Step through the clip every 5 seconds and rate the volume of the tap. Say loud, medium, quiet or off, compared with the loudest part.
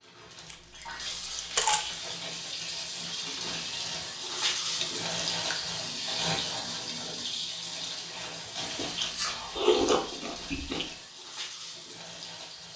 loud, loud, medium.